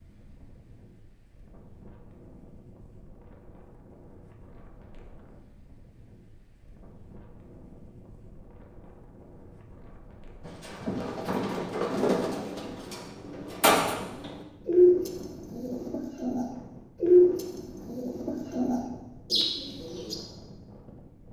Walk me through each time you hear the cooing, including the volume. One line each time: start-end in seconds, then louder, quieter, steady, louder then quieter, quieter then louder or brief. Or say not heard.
10.4-20.1 louder then quieter.